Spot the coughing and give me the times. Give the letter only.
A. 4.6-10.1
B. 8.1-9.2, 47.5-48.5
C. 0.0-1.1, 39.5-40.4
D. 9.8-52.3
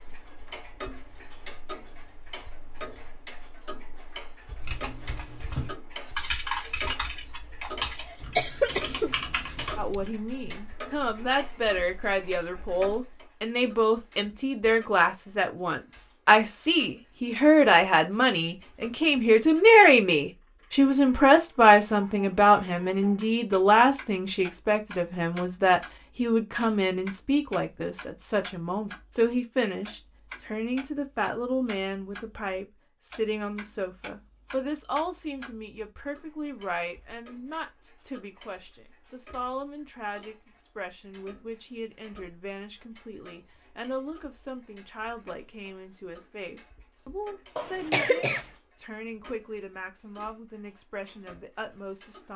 B.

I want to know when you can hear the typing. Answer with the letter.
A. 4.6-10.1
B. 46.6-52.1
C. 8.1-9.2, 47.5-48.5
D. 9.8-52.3
A.